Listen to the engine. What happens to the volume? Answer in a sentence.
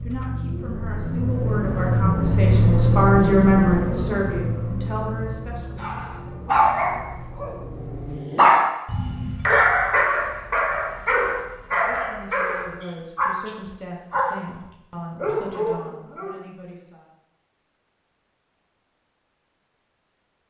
The volume of the engine goes up, then down.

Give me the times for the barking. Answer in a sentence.
The barking can be heard from 5.8 to 14.6 s and from 15.2 to 16.4 s.